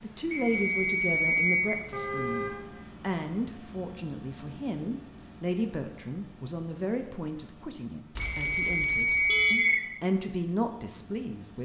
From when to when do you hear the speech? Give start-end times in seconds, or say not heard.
0.0-11.6.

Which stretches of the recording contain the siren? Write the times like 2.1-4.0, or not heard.
not heard.